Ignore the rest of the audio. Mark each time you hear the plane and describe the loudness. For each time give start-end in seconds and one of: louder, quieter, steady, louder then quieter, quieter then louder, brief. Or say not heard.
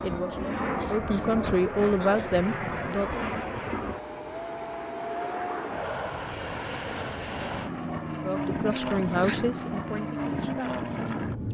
0.0-11.4 steady.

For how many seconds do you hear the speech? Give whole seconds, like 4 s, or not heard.
6 s.